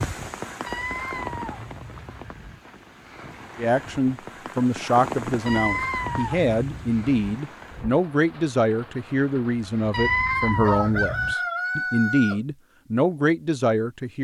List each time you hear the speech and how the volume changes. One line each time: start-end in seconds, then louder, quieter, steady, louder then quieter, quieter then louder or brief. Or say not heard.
3.5-14.1 steady.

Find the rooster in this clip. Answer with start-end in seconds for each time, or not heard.
9.8-12.4.